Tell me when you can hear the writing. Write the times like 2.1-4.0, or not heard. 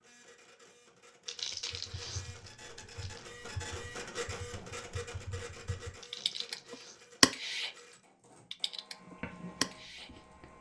8.9-10.5.